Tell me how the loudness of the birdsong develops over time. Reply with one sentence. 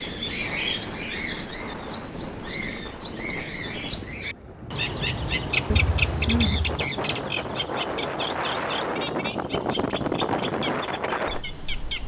The loudness of the birdsong goes down.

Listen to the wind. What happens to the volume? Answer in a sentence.
The volume of the wind goes up.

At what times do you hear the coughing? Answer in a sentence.
You can hear the coughing from 5.7 to 6.8 s.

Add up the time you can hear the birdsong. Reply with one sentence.
You can hear the birdsong for 12 seconds altogether.